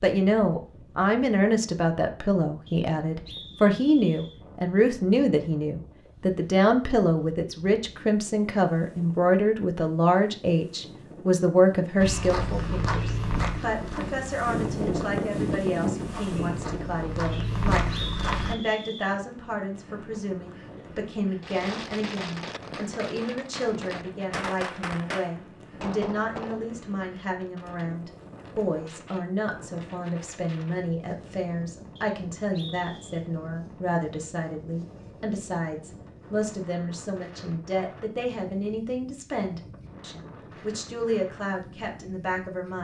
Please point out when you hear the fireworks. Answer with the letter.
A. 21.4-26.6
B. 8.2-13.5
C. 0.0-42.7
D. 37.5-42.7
A.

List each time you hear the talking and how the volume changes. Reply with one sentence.
You can hear the talking from 0.0 to 42.7 s, getting quieter.